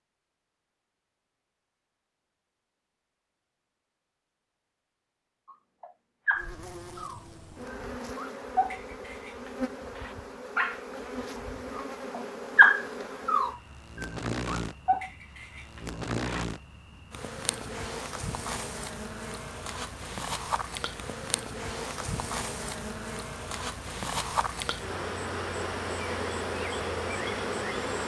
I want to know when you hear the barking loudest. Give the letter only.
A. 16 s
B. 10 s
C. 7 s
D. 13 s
D.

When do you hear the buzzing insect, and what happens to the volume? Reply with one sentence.
You can hear the buzzing insect from 6.3 to 28.0 s, getting louder.